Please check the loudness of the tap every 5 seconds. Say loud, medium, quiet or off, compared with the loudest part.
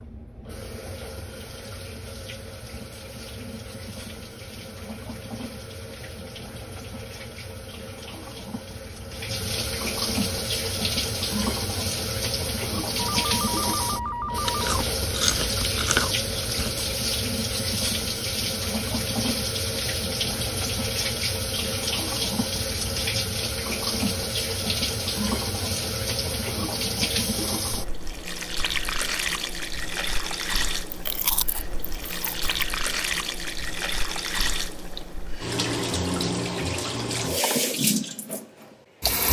quiet, medium, loud, loud, loud, loud, loud, loud.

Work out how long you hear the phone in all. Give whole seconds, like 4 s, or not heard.
2 s.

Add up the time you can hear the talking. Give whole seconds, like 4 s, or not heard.
not heard.